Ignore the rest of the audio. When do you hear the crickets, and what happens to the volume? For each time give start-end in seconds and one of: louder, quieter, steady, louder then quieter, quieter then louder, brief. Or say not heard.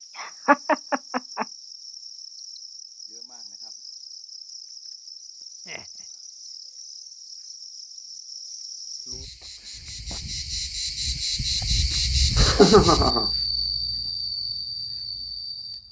0.0-15.8 louder.